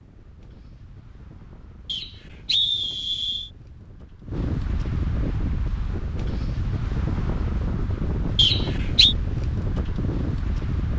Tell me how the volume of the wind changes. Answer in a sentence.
The volume of the wind goes up.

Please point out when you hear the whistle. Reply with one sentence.
The whistle can be heard from 1.9 to 3.5 s and from 8.3 to 9.2 s.